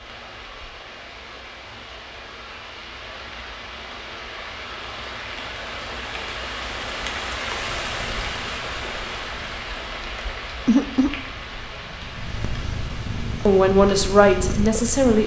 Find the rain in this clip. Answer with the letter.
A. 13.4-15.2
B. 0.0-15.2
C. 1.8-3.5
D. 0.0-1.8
B.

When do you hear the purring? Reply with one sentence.
You can hear the purring from 7.8 to 15.2 s.